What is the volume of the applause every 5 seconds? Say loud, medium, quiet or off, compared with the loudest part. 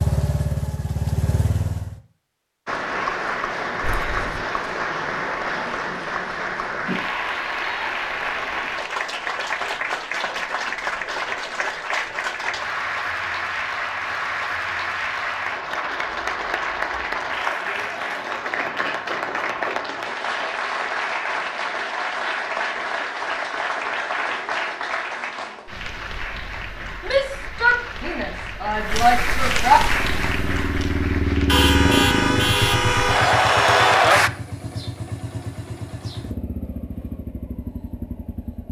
medium, medium, medium, medium, medium, medium, loud, off.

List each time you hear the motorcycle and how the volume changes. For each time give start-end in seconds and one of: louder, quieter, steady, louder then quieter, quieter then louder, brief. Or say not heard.
0.0-1.9 brief
29.8-38.6 quieter.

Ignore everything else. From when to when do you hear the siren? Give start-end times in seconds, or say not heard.
not heard.